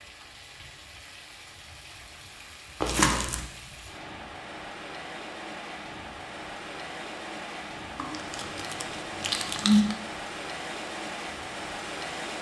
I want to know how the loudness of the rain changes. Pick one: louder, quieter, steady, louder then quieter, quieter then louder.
louder.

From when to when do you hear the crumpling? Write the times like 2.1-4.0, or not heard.
2.8-3.5, 8.0-9.9.